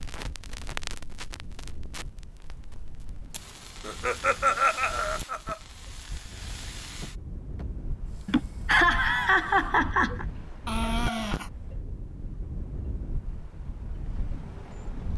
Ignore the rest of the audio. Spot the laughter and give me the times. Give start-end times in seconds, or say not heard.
3.9-5.5, 8.2-10.2.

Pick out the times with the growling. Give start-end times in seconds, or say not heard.
10.7-11.5.